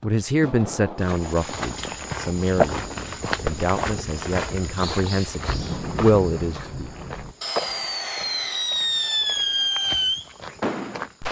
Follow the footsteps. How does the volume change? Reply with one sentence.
The loudness of the footsteps goes down.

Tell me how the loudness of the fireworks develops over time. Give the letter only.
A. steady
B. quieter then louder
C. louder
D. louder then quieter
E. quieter
C.